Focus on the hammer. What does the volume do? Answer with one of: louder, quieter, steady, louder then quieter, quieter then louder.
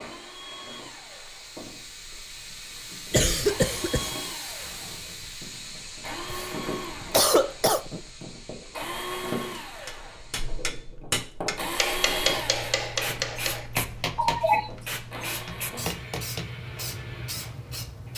quieter.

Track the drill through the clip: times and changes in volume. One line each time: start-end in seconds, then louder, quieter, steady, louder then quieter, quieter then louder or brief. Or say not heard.
0.0-18.1 louder then quieter.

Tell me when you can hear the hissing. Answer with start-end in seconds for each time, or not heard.
0.0-10.9, 12.2-18.1.